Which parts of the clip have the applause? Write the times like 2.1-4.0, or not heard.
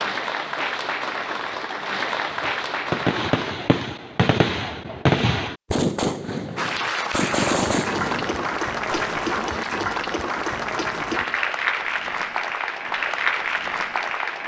0.0-3.5, 6.5-14.4.